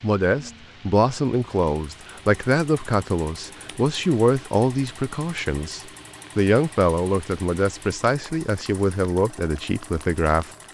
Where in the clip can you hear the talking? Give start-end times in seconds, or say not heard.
0.0-10.5.